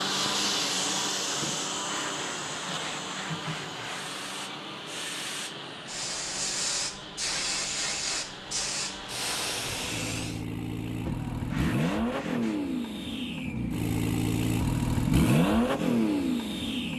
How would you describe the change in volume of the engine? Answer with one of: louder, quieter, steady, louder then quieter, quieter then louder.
quieter then louder.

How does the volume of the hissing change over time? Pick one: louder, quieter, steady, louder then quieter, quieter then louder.
quieter then louder.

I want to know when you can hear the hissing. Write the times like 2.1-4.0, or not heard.
0.0-10.4.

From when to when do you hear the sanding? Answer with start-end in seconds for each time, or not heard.
1.4-4.2, 11.1-12.6.